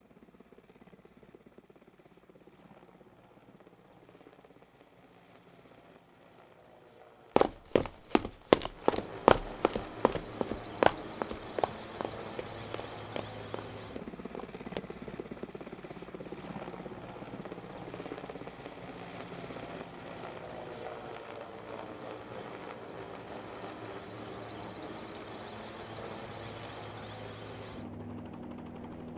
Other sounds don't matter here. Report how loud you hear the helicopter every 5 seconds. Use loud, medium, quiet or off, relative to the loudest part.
quiet, medium, loud, loud, loud, loud.